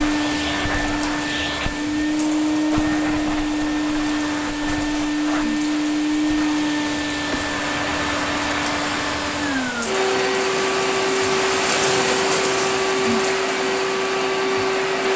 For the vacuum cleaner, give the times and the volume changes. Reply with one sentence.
You can hear the vacuum cleaner from 0.0 to 15.1 s, at a steady volume.